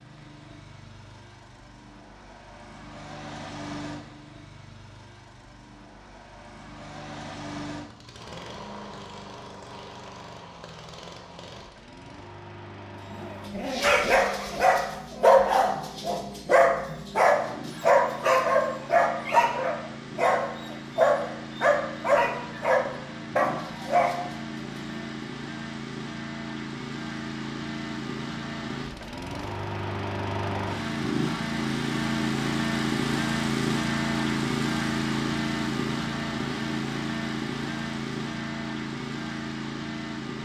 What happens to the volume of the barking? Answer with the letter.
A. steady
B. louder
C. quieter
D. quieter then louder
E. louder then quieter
A.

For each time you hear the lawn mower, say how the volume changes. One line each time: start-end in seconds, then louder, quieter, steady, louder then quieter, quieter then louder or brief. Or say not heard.
0.0-40.4 louder.